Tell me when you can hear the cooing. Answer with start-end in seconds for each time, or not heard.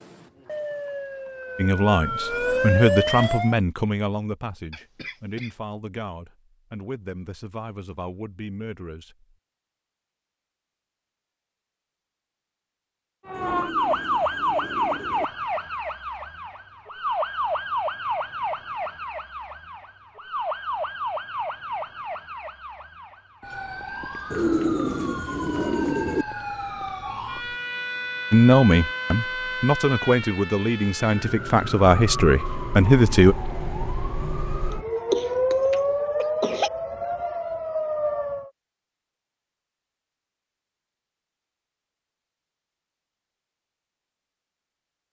13.3-15.2, 24.3-26.2.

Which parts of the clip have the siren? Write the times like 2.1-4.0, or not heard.
0.5-3.5, 13.2-38.5.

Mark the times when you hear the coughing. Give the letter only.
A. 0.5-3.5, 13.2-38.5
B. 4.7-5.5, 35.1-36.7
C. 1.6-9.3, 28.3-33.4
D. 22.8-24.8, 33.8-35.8
B.